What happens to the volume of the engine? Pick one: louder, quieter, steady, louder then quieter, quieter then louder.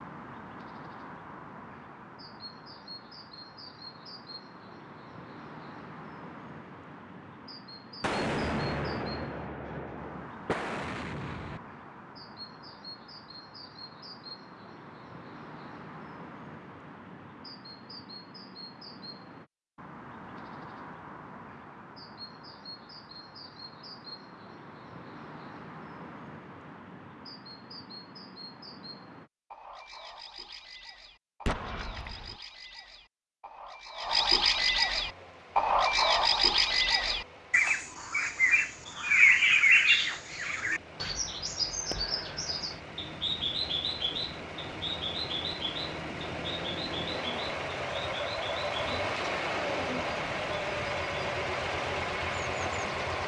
louder.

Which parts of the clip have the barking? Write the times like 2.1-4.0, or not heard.
not heard.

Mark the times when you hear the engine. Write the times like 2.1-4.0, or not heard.
35.0-53.2.